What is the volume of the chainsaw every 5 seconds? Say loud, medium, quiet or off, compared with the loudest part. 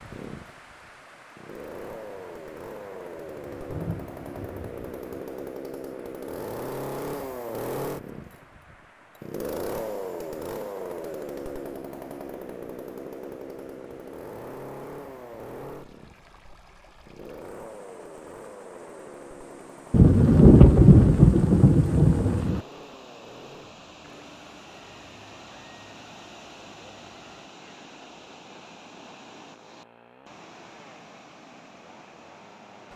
medium, loud, loud, medium, quiet, quiet, quiet.